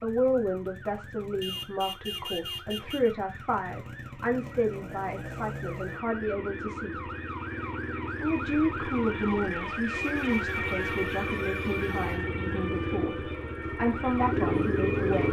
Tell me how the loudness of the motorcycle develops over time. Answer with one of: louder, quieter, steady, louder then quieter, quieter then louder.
louder.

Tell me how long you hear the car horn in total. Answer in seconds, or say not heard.
4 s.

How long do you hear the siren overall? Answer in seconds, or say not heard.
15 s.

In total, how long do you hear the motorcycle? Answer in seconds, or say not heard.
15 s.